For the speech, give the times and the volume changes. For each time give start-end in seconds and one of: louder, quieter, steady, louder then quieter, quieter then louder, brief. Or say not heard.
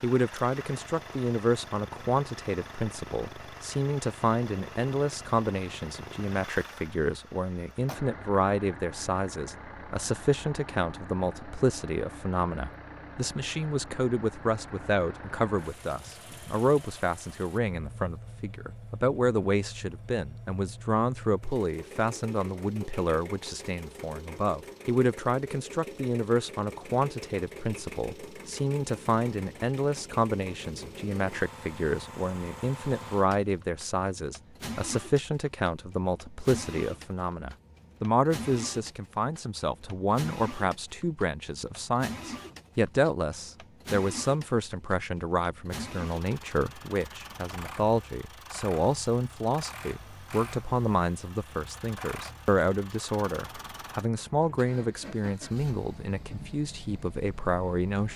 0.0-58.1 steady.